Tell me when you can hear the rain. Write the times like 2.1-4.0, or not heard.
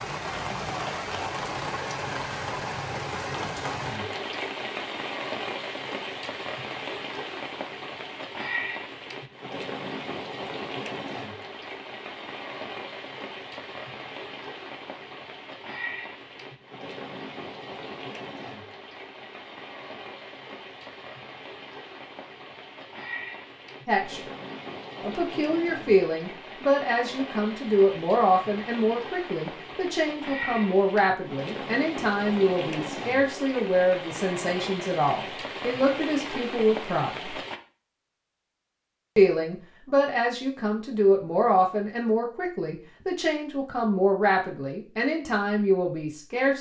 0.0-37.6.